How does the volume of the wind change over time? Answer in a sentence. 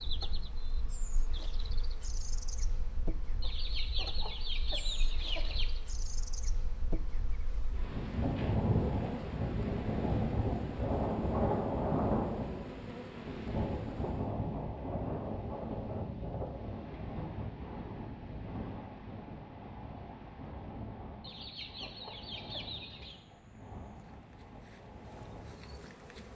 The loudness of the wind goes up, then down.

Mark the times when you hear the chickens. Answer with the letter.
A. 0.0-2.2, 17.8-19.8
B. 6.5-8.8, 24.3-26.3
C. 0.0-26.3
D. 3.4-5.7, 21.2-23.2
D.